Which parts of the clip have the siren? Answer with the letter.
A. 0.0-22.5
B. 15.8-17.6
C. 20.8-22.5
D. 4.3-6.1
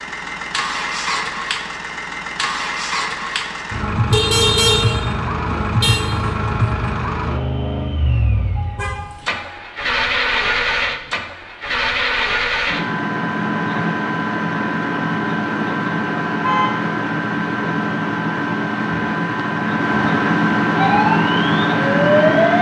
C.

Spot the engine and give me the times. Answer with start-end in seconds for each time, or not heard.
0.0-22.5.